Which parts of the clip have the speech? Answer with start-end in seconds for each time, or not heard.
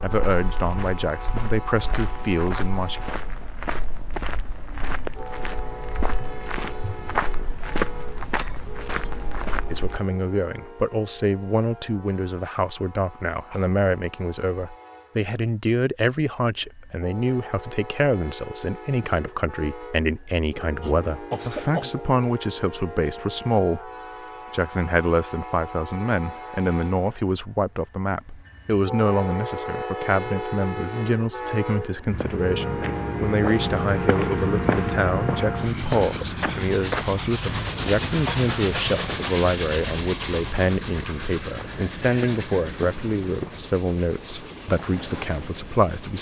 0.0-3.0, 9.7-23.9, 24.5-46.1.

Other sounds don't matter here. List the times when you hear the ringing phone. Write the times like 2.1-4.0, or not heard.
not heard.